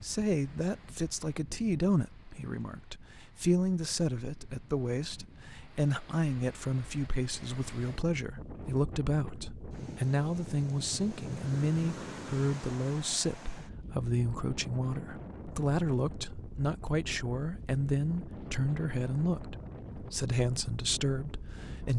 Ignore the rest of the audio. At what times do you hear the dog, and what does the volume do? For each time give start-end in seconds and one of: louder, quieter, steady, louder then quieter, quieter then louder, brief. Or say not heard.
not heard.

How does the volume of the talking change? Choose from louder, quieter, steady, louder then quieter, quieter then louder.
steady.